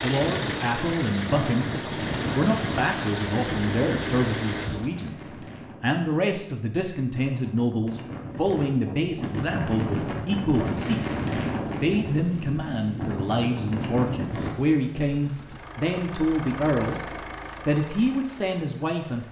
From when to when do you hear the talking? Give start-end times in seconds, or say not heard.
0.0-1.7, 2.3-5.2, 5.8-11.0, 11.8-19.2.